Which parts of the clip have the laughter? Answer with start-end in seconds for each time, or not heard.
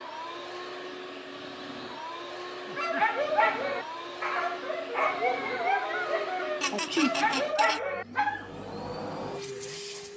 6.6-7.8.